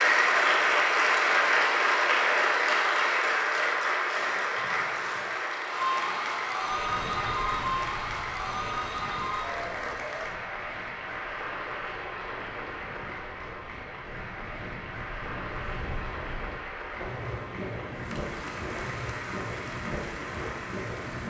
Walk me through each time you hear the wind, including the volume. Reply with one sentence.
You can hear the wind from 6.6 to 21.2 s, getting quieter then louder.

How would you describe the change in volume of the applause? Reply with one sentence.
The loudness of the applause goes down.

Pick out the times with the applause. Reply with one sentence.
The applause can be heard from 0.0 to 21.2 s.